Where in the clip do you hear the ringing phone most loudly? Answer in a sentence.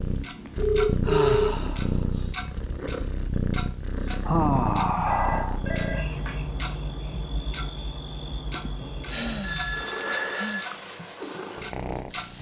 The volume of the ringing phone peaks at 1 second.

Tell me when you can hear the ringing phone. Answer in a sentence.
You can hear the ringing phone from 0.6 to 1.5 s, from 5.0 to 6.3 s and from 9.4 to 10.7 s.